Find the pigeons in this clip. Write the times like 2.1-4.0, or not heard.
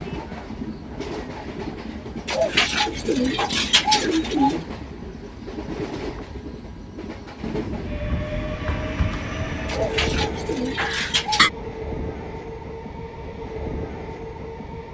2.2-4.6, 9.7-11.5.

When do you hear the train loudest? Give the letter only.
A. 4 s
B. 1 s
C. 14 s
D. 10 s
D.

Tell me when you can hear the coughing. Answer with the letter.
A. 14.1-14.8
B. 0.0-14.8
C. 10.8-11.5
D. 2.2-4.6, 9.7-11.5
C.